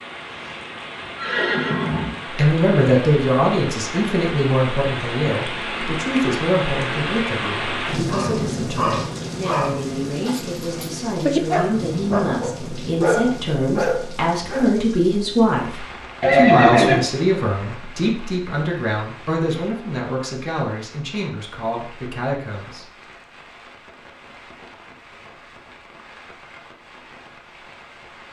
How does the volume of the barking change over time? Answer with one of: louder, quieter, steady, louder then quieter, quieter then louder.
quieter then louder.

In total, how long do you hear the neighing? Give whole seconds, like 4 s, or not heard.
3 s.